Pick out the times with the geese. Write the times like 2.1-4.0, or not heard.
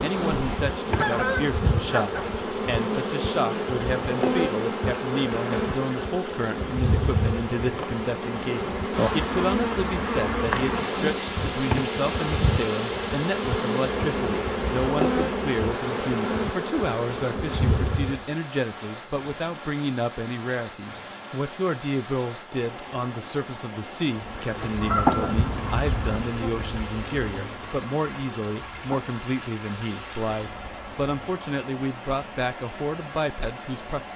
0.3-2.2, 24.8-26.2.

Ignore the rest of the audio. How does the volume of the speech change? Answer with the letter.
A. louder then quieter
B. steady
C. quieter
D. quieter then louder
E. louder
B.